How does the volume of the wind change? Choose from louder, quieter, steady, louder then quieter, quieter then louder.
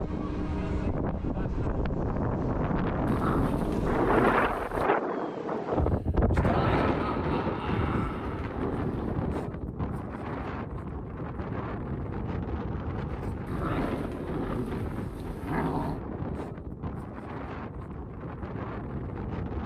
quieter.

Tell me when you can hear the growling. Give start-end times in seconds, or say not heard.
3.0-4.9, 7.7-9.3, 13.4-16.0.